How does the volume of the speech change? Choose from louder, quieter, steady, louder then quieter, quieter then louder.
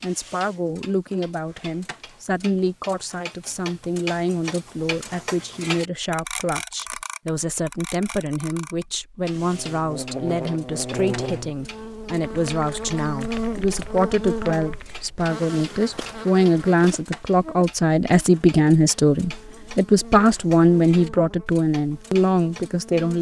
louder.